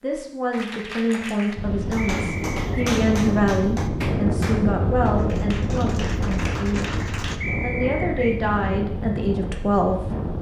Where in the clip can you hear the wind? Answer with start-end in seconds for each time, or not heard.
1.6-10.3.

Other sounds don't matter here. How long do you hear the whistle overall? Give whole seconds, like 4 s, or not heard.
2 s.